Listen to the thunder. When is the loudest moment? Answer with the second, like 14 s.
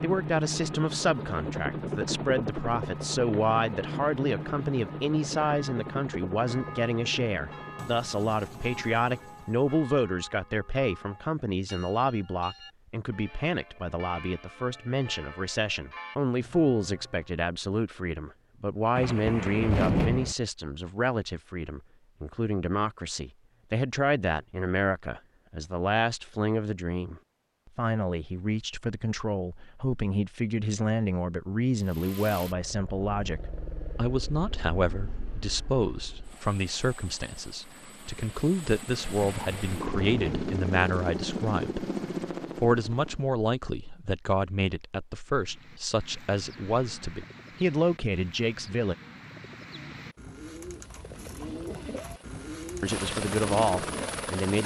20 s.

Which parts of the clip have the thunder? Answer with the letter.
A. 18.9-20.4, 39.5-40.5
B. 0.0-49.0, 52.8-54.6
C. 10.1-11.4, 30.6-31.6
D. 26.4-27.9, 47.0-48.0
A.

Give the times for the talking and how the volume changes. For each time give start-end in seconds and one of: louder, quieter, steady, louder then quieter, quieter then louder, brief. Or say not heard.
0.0-49.0 steady
52.8-54.6 brief.